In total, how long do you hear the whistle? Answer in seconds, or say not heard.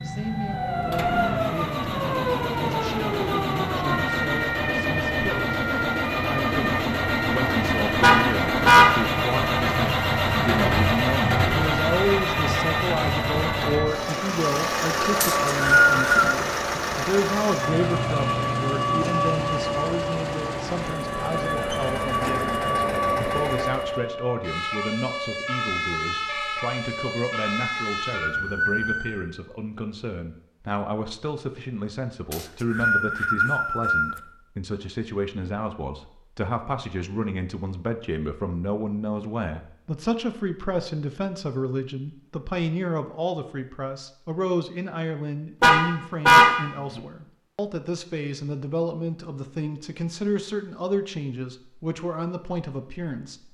3 s.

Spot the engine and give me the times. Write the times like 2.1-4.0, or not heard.
0.0-24.1.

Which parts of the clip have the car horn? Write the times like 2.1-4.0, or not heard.
8.0-8.9, 45.6-47.0.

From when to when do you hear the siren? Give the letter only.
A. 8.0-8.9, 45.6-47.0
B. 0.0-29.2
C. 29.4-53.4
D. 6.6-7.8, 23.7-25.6
B.